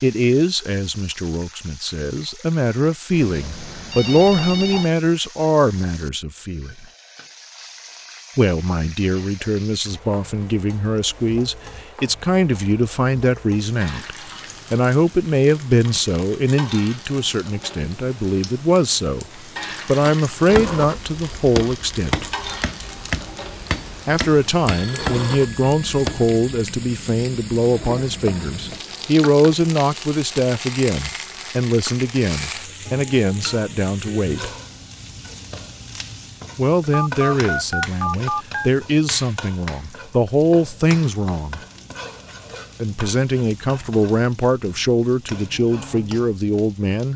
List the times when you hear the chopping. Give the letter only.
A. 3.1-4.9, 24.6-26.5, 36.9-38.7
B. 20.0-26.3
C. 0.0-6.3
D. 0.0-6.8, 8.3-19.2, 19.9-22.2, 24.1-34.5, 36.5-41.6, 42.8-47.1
B.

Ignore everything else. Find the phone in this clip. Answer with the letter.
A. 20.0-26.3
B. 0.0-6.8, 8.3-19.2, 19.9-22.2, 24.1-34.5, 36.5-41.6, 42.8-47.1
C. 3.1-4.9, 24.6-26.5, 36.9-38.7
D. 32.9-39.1
C.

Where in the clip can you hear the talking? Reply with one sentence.
The talking can be heard from 0.0 to 6.8 s, from 8.3 to 19.2 s, from 19.9 to 22.2 s, from 24.1 to 34.5 s, from 36.5 to 41.6 s and from 42.8 to 47.1 s.